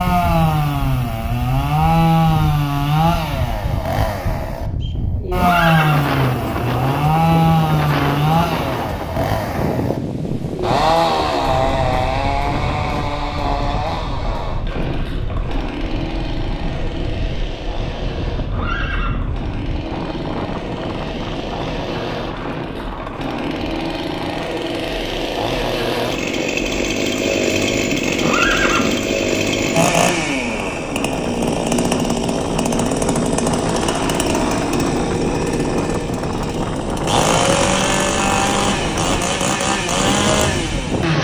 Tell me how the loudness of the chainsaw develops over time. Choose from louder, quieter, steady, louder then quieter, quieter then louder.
quieter then louder.